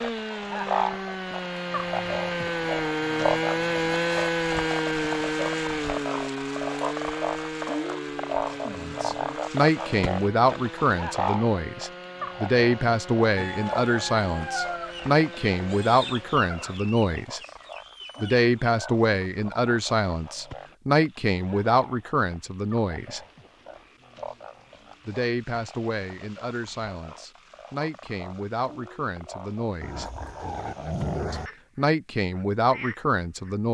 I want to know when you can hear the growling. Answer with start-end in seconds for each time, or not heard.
29.8-31.5.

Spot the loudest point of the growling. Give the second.
31 s.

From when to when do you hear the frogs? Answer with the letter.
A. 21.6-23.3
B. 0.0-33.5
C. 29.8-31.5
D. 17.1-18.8
B.